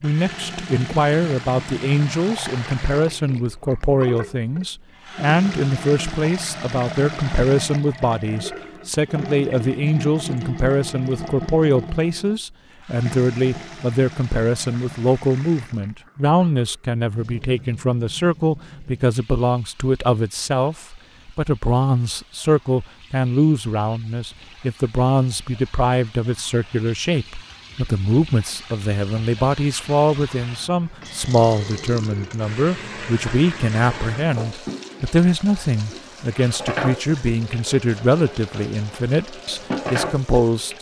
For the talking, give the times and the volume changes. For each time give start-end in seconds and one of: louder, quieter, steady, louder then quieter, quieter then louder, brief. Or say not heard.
0.0-40.7 steady.